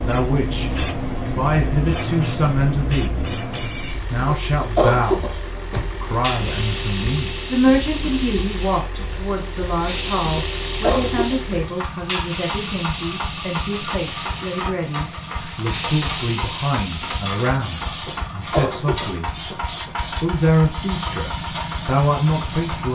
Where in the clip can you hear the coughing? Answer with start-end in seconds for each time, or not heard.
4.2-5.8, 10.3-11.3, 18.1-19.9.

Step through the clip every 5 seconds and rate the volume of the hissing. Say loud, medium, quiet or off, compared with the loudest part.
loud, loud, loud, loud, medium.